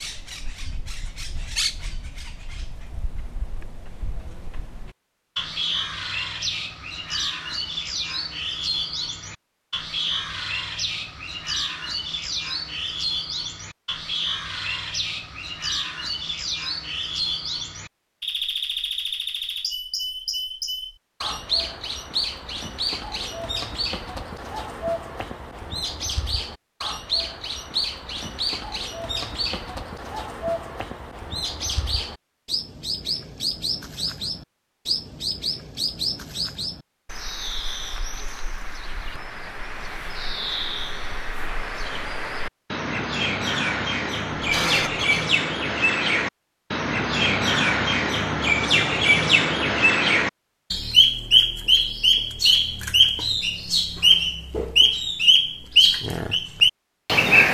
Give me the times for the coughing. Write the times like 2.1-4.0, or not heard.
44.3-45.2.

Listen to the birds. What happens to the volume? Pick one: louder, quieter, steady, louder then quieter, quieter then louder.
louder.